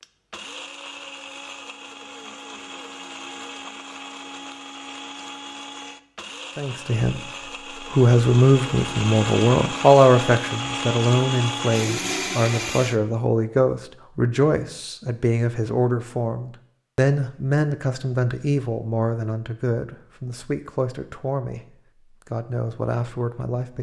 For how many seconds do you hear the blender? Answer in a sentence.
The blender can be heard for 13 seconds in total.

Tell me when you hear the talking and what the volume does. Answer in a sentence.
You can hear the talking briefly from 6.5 to 7.2 s; from 7.9 to 21.6 s, getting quieter; and briefly from 22.3 to 23.7 s.